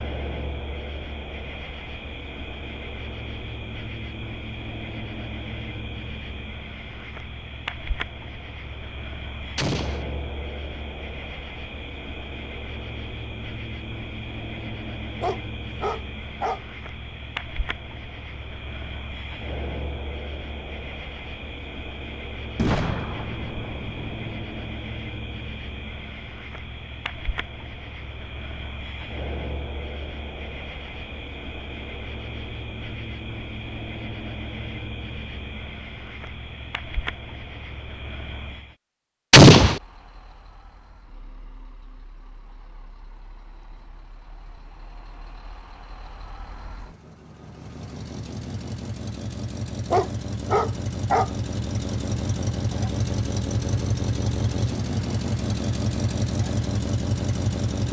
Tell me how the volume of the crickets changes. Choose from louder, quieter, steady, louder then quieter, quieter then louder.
steady.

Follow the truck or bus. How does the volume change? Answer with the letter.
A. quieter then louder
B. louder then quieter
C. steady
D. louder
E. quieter
D.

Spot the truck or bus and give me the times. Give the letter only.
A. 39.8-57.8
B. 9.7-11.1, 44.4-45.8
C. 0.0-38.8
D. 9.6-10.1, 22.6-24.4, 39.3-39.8
A.